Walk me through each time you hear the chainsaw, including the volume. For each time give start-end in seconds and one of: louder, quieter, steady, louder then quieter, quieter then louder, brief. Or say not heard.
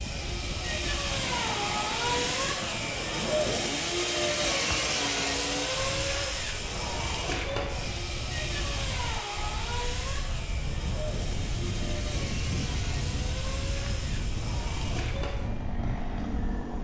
0.0-16.7 quieter.